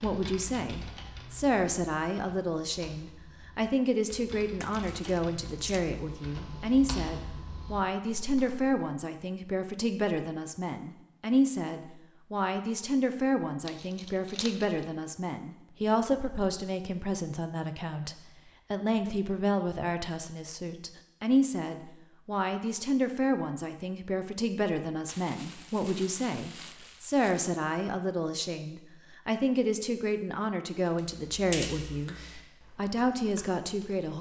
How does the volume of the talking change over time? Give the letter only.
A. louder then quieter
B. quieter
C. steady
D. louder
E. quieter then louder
C.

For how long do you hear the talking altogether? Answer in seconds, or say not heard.
34 s.